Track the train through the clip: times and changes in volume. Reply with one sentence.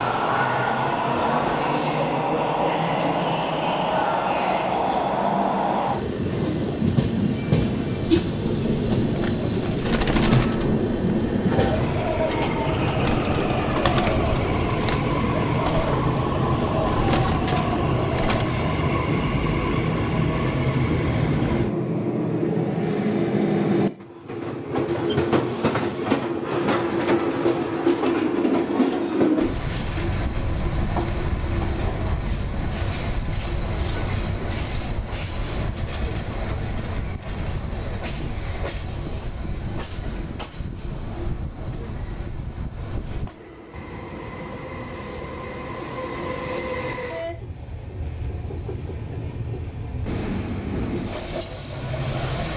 The train can be heard from 0.0 to 52.5 s, getting quieter.